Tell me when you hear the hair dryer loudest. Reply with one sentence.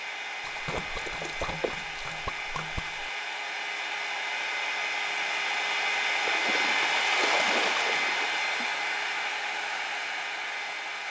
The volume of the hair dryer peaks at 7 seconds.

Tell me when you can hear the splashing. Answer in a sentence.
You can hear the splashing from 0.5 to 3.1 s and from 6.2 to 8.7 s.